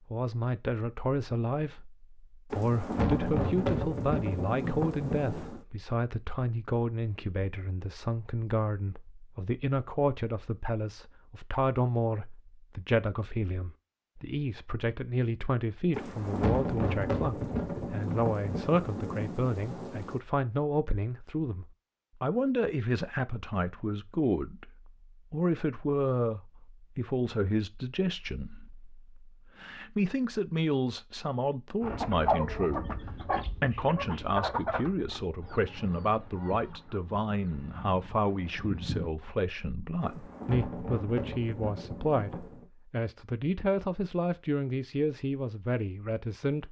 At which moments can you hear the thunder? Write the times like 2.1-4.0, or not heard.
2.5-5.6, 15.9-20.2, 40.0-42.6.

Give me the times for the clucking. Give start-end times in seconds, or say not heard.
31.8-39.3.